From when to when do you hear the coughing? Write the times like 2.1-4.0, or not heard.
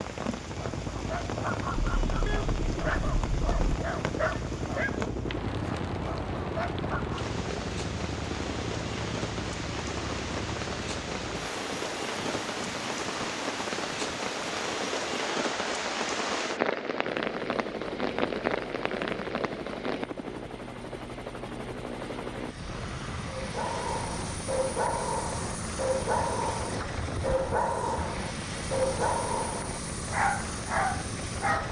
not heard.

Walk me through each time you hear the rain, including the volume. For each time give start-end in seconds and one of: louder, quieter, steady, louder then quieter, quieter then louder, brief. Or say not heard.
0.0-20.1 louder.